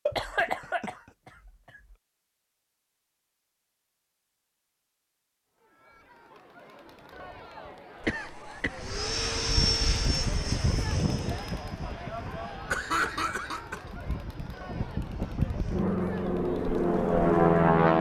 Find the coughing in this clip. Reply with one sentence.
You can hear the coughing from 0.1 to 0.9 s, from 8.0 to 9.2 s and from 12.7 to 13.9 s.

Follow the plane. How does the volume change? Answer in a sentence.
The loudness of the plane goes down, then up.